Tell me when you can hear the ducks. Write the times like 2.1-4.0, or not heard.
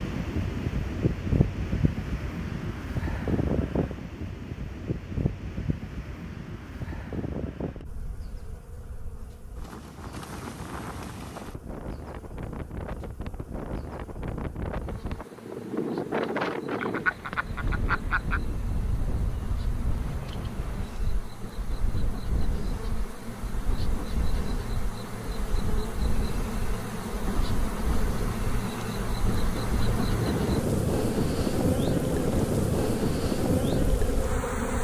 16.8-18.4.